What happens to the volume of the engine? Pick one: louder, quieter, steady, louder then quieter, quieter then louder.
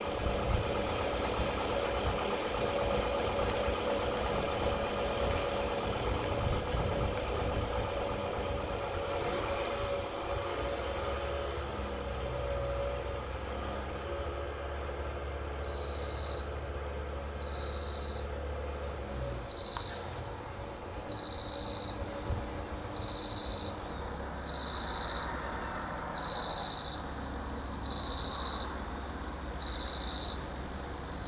quieter.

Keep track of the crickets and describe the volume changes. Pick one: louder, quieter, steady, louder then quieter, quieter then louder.
louder.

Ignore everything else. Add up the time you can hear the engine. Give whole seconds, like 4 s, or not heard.
31 s.